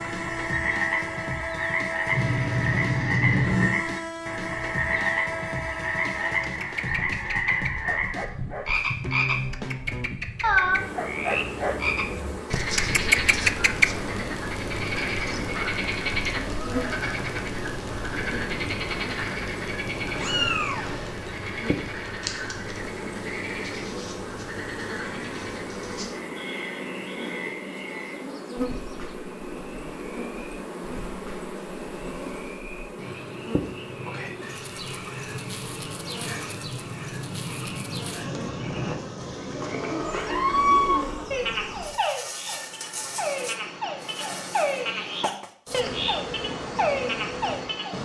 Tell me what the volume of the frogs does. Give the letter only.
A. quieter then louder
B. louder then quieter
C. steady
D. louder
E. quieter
A.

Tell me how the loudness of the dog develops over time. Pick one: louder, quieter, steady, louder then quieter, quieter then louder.
louder.